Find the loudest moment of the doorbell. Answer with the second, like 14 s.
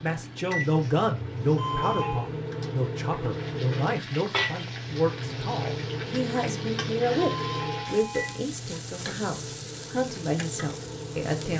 2 s.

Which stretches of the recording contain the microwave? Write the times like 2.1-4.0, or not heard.
0.0-11.5.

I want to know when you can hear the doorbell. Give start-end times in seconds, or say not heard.
1.6-2.3, 7.2-8.5.